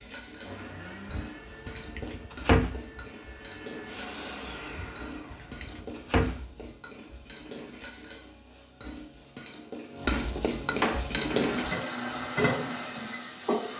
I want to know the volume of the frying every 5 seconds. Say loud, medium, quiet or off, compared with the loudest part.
quiet, quiet, loud.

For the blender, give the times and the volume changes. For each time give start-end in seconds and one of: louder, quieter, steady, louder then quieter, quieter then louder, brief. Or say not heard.
0.2-5.7 quieter then louder
11.2-13.7 brief.